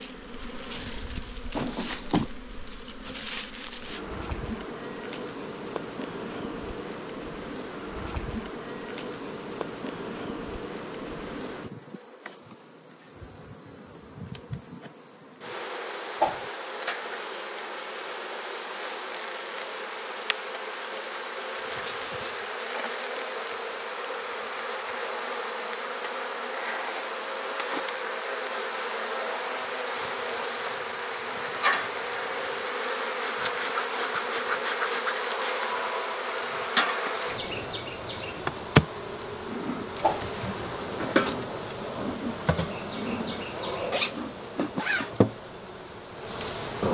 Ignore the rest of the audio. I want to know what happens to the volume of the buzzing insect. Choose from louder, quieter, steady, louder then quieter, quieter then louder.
louder.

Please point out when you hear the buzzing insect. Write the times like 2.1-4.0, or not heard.
0.0-46.8.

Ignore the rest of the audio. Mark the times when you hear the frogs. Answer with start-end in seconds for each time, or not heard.
not heard.